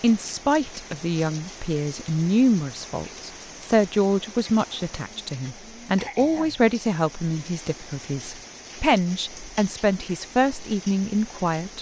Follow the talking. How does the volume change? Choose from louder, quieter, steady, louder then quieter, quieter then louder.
steady.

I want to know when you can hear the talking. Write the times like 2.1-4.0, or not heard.
0.0-11.7.